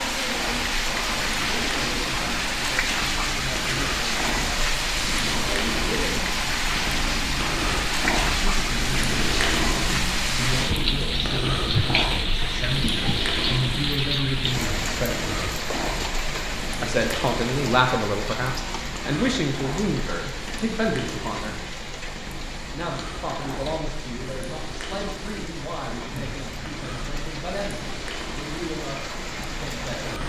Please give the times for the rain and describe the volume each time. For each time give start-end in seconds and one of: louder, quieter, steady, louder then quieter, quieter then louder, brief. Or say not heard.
0.0-30.2 quieter.